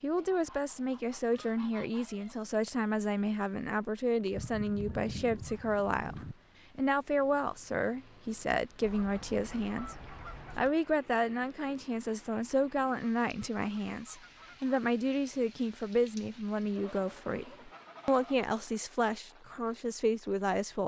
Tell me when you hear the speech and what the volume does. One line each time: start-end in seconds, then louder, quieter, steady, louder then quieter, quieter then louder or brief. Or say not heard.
0.0-9.9 steady
10.6-20.8 steady.